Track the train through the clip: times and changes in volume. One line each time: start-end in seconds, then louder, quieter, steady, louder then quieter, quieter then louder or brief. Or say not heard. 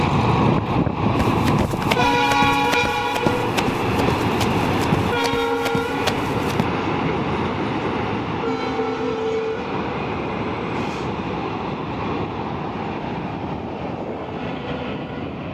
0.0-15.4 quieter.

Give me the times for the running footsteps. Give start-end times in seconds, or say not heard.
1.1-6.7.